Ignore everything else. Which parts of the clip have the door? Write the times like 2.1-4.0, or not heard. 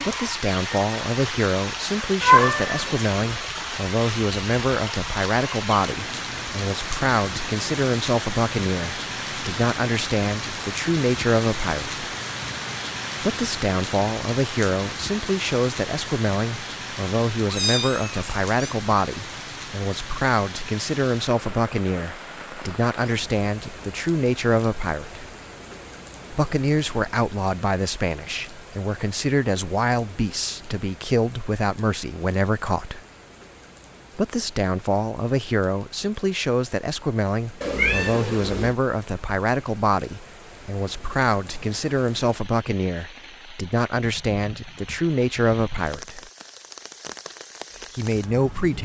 not heard.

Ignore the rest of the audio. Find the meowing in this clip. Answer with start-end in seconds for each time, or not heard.
2.2-3.0, 17.4-18.8, 37.6-38.8.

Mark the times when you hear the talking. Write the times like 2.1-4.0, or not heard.
0.1-12.1, 13.2-25.2, 26.3-33.0, 34.1-46.2, 48.0-48.7.